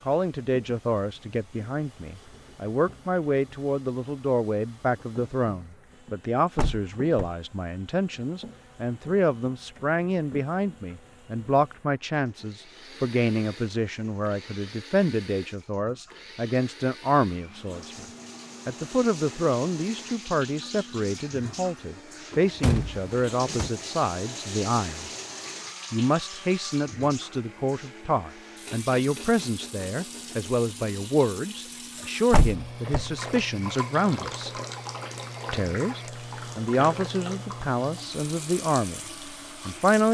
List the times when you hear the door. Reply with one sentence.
You can hear the door from 6.5 to 7.3 s, from 22.3 to 23.7 s and from 32.3 to 33.4 s.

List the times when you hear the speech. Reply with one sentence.
The speech can be heard from 0.1 to 18.1 s, from 18.6 to 25.1 s, from 25.9 to 34.5 s, from 35.5 to 39.0 s and from 39.6 to 40.1 s.